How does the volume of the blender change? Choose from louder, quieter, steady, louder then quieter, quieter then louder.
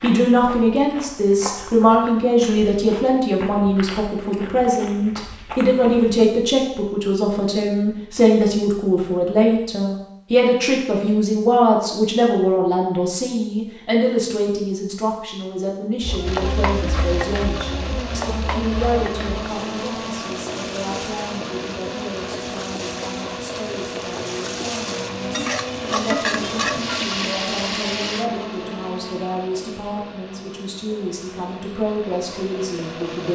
quieter.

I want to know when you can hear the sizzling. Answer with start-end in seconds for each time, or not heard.
16.0-28.3.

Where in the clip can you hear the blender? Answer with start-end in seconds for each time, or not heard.
16.2-33.2.